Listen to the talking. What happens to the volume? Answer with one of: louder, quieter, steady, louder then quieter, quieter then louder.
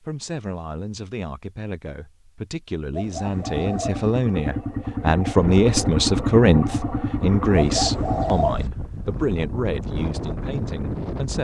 louder then quieter.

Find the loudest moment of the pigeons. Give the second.
8 s.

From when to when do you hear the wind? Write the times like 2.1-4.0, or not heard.
5.4-11.4.